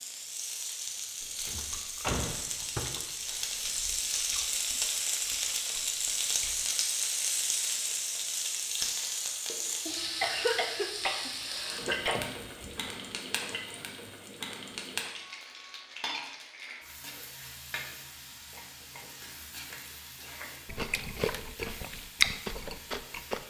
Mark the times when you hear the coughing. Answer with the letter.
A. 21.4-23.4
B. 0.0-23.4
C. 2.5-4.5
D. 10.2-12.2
D.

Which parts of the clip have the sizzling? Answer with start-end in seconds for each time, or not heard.
0.0-23.4.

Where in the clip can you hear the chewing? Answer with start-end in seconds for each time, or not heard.
1.2-6.7, 20.6-23.4.